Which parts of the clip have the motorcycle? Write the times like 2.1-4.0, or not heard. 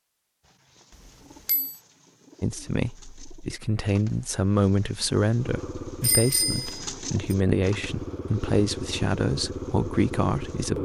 5.3-10.8.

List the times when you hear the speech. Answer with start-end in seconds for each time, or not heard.
2.4-10.8.